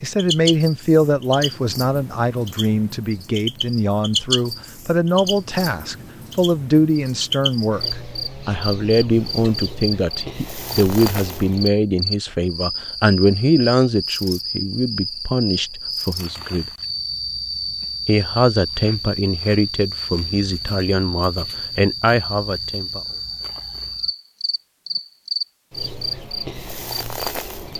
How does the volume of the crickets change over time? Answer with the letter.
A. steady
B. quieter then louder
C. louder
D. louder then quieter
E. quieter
A.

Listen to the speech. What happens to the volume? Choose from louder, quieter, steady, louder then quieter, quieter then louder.
steady.